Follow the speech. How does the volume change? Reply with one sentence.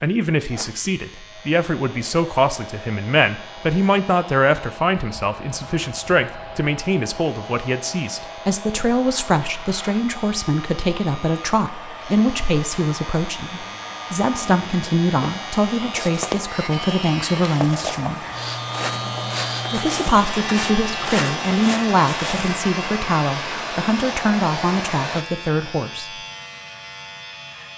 The volume of the speech stays about the same.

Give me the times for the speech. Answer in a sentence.
The speech can be heard from 0.0 to 18.2 s and from 19.7 to 26.1 s.